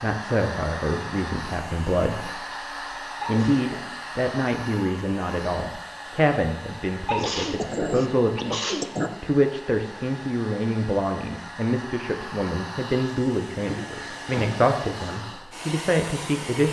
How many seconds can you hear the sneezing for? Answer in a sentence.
You can hear the sneezing for 4 seconds altogether.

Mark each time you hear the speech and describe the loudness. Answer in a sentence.
The speech can be heard briefly from 0.0 to 2.4 s; and from 3.2 to 16.6 s, at a steady volume.